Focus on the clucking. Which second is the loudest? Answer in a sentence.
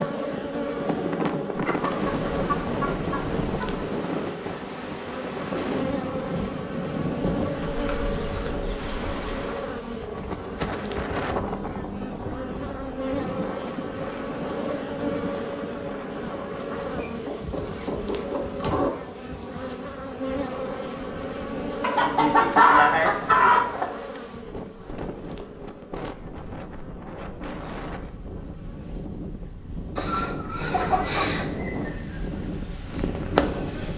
The volume of the clucking peaks at 23 seconds.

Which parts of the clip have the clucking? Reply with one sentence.
You can hear the clucking from 1.6 to 3.9 s, from 7.8 to 9.3 s, from 16.9 to 18.9 s, from 21.8 to 23.9 s and from 29.9 to 31.4 s.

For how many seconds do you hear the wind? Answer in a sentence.
The wind can be heard for 34 seconds in total.